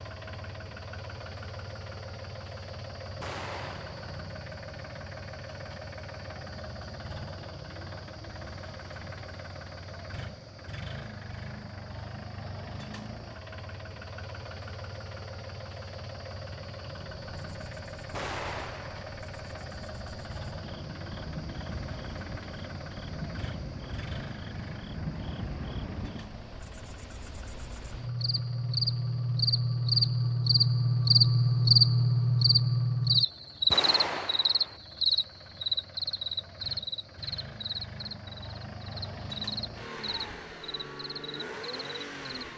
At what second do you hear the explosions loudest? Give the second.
34 s.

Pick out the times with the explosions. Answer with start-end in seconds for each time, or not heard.
3.2-4.2, 18.1-19.1, 33.7-34.8.